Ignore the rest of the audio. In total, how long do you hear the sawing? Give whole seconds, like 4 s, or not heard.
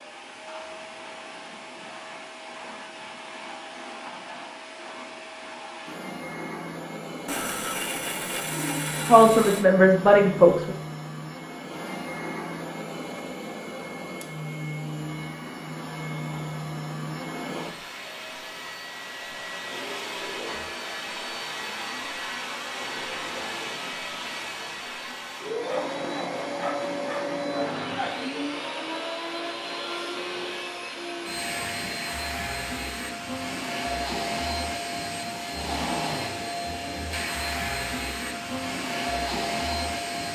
5 s.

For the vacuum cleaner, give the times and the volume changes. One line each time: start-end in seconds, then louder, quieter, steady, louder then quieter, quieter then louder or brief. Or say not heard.
0.0-40.3 louder.